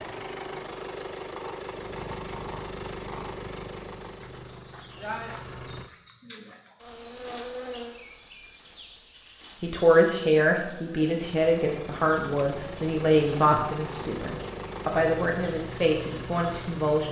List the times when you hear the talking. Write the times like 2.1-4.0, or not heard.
9.6-17.0.